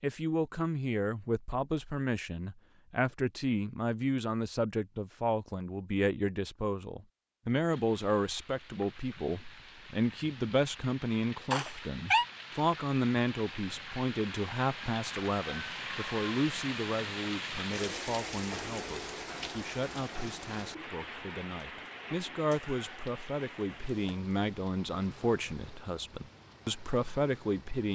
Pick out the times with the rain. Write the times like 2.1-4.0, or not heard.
7.7-27.9.